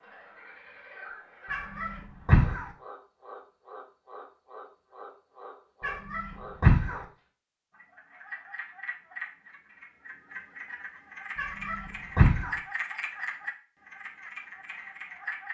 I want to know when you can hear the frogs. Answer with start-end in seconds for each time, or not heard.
0.0-15.4.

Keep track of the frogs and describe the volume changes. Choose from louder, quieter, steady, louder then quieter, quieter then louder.
louder.